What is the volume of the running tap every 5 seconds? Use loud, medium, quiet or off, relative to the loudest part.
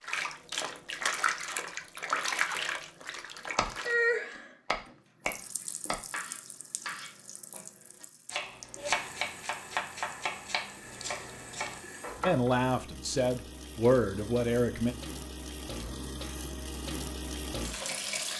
loud, quiet, quiet, medium.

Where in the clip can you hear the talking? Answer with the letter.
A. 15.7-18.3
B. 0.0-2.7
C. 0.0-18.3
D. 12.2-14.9
D.